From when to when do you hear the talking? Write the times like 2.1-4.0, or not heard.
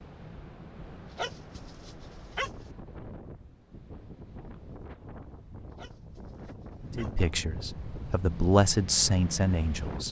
7.0-10.0.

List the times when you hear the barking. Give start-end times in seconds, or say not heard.
1.1-2.7, 5.7-7.3.